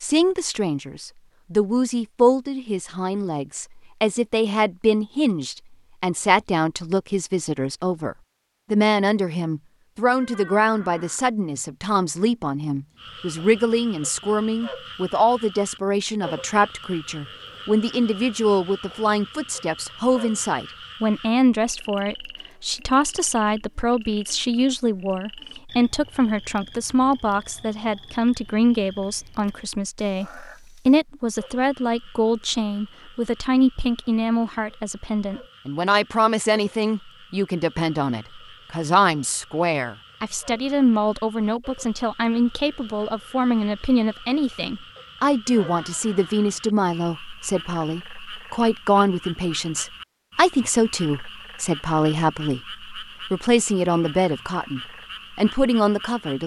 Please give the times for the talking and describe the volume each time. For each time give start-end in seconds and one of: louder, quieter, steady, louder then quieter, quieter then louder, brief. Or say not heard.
0.0-56.4 steady.